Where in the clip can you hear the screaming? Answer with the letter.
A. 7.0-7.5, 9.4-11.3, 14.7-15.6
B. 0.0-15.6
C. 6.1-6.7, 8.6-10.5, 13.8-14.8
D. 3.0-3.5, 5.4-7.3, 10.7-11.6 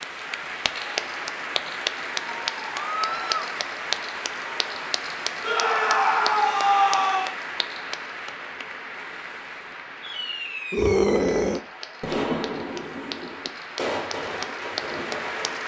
D.